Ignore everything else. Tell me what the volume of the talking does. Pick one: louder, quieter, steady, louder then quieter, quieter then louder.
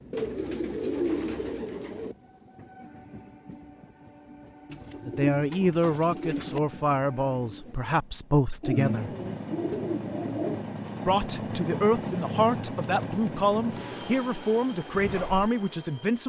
steady.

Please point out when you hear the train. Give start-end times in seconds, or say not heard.
0.0-16.2.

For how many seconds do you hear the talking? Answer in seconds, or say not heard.
9 s.